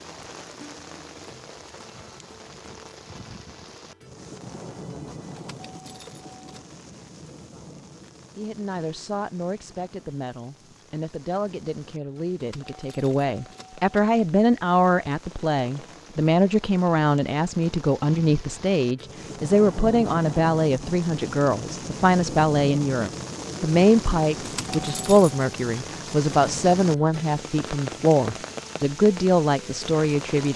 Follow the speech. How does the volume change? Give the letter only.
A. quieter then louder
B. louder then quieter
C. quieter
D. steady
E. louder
E.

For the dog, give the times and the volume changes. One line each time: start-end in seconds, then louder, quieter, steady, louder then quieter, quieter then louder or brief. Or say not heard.
not heard.